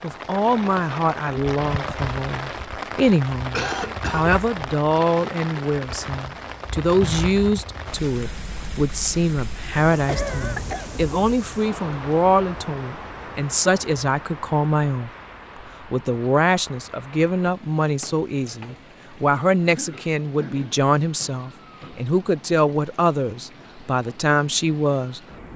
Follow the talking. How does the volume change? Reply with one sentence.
The loudness of the talking stays about the same.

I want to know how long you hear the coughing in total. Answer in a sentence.
The coughing can be heard for 3 seconds in total.